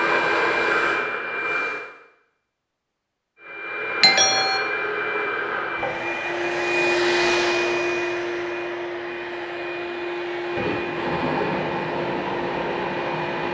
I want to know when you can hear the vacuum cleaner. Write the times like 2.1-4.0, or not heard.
0.0-1.9, 3.4-13.4.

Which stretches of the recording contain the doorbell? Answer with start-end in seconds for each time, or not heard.
4.0-4.6.